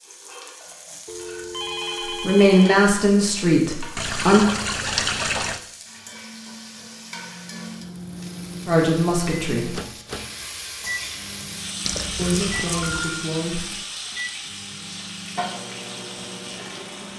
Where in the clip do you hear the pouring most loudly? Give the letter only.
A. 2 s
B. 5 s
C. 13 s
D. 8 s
B.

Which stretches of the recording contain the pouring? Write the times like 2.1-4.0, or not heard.
4.0-5.6, 11.8-12.9.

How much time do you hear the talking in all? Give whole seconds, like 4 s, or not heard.
5 s.